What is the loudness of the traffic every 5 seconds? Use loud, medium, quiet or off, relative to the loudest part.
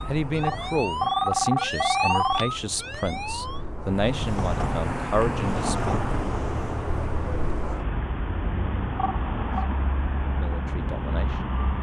medium, loud, loud.